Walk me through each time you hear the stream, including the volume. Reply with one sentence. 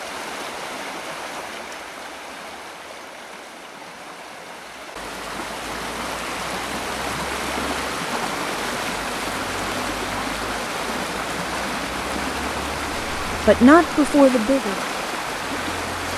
The stream can be heard from 0.0 to 16.1 s, getting louder.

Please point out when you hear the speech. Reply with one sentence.
The speech can be heard from 13.2 to 14.8 s.